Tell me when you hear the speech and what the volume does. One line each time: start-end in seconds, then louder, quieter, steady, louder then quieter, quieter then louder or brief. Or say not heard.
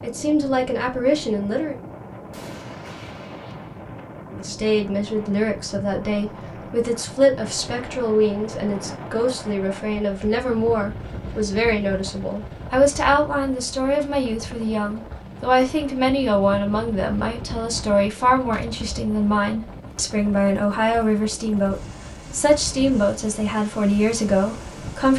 0.0-1.8 brief
4.3-25.1 steady.